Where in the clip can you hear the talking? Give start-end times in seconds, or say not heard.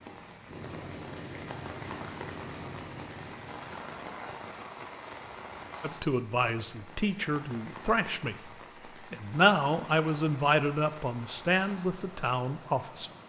5.8-13.1.